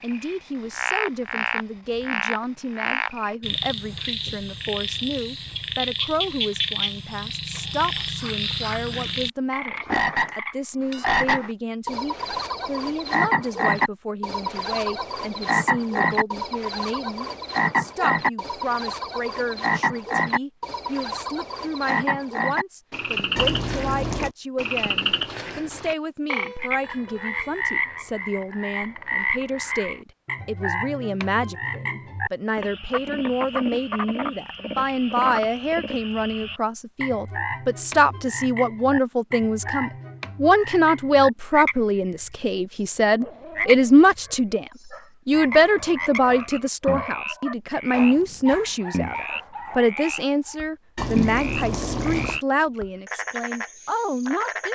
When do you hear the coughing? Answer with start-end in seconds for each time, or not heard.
9.8-10.3.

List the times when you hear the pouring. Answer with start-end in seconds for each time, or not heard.
23.4-24.4, 51.0-52.4.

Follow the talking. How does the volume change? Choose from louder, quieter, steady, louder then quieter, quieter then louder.
louder.